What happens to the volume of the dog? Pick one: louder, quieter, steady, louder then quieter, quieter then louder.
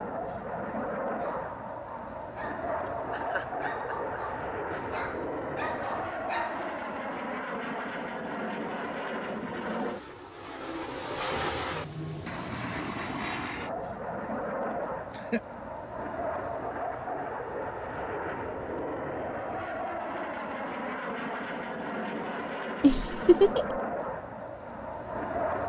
louder.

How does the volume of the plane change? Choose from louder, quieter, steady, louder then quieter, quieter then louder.
steady.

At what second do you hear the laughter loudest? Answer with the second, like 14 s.
23 s.